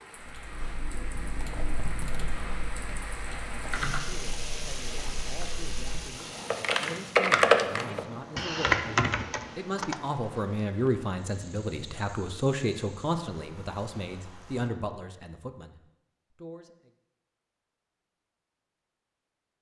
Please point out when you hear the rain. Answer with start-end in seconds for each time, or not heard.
0.0-14.7.